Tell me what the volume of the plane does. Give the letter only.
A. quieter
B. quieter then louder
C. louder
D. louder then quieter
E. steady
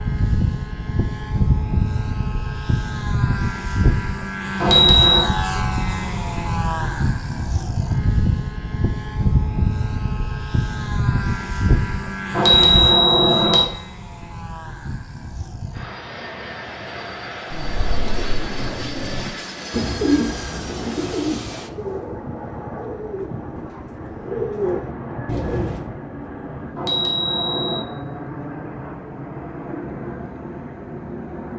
A.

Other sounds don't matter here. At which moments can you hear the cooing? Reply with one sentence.
You can hear the cooing from 17.5 to 25.9 s.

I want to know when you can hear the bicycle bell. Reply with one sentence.
You can hear the bicycle bell from 4.6 to 5.3 s, from 12.3 to 13.7 s and from 26.8 to 27.9 s.